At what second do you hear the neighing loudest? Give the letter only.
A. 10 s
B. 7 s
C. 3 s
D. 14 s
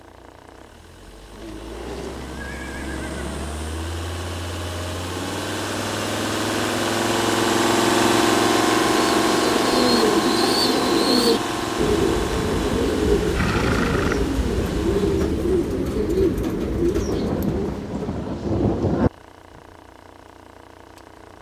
D.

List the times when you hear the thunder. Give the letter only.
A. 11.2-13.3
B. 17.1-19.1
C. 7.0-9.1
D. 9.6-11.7
B.